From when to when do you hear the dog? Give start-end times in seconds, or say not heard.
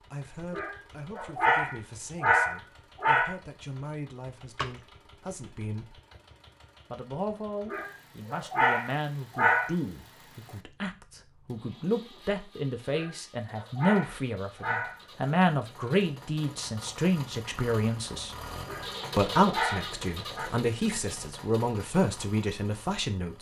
0.5-3.4, 7.7-9.8, 12.9-15.0, 18.6-20.5.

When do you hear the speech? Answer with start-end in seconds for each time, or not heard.
0.0-6.0, 6.9-18.4, 19.1-23.3.